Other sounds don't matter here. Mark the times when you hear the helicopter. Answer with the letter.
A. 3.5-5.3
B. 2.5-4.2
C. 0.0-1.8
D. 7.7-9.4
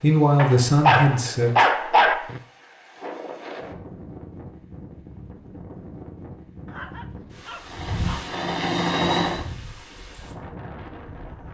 D.